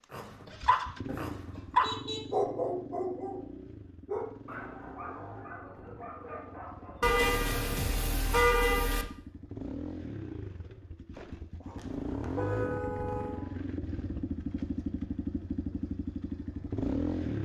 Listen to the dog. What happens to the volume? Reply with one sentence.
The loudness of the dog goes down.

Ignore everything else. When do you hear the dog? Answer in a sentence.
You can hear the dog from 0.1 to 3.5 s and from 4.0 to 7.2 s.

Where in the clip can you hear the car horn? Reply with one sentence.
You can hear the car horn from 1.6 to 2.4 s, from 7.0 to 9.1 s and from 11.8 to 13.4 s.